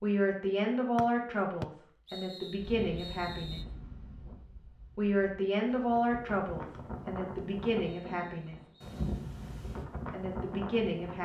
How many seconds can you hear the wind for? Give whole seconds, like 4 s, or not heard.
9 s.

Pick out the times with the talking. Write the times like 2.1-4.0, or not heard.
0.0-3.6, 5.0-8.6, 10.1-11.2.